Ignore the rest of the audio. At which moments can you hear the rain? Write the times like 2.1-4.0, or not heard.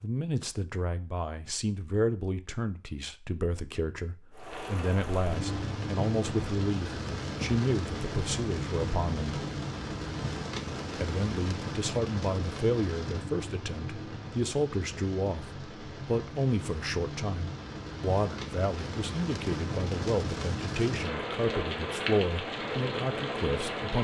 4.3-23.9.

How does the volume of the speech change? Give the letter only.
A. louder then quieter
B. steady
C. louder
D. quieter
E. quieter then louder
B.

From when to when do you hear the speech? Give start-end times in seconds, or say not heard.
0.0-9.4, 10.9-23.9.